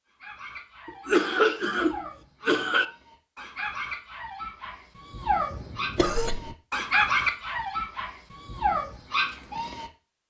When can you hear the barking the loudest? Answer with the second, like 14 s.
7 s.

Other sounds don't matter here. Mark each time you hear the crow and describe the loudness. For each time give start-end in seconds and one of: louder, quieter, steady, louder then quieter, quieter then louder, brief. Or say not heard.
not heard.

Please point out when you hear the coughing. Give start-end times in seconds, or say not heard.
0.8-2.9, 5.5-6.5.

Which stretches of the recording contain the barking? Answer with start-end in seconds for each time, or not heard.
0.2-9.9.